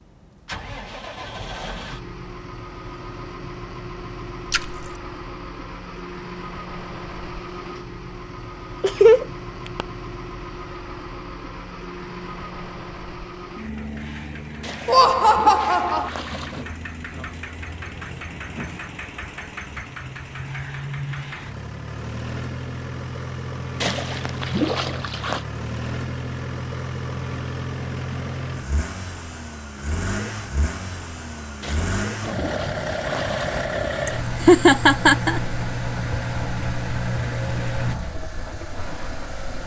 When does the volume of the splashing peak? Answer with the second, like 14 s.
25 s.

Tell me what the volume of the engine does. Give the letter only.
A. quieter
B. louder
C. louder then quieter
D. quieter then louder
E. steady
B.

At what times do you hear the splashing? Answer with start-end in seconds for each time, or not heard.
4.5-5.0, 14.6-16.6, 23.8-25.4, 31.6-33.6.